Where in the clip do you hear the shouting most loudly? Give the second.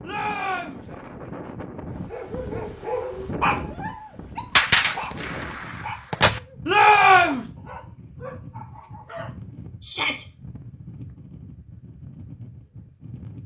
7 s.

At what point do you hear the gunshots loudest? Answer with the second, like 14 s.
5 s.